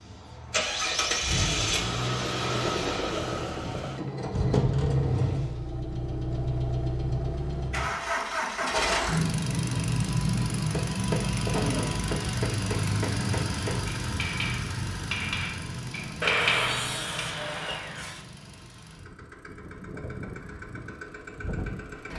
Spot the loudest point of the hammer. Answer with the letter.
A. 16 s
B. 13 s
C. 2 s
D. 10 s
A.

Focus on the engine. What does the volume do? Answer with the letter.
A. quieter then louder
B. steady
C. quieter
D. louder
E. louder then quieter
C.